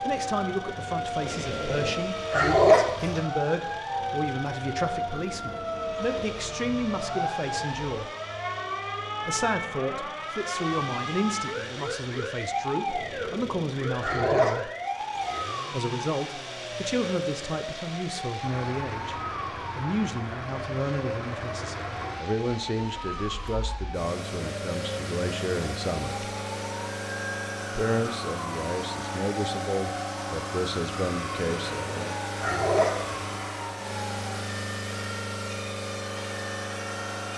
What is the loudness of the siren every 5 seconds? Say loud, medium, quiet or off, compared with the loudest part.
loud, loud, loud, loud, medium, medium, medium, medium.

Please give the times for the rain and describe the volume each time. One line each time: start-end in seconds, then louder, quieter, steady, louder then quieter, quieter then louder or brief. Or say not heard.
not heard.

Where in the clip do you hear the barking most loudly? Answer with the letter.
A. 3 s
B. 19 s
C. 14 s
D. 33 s
A.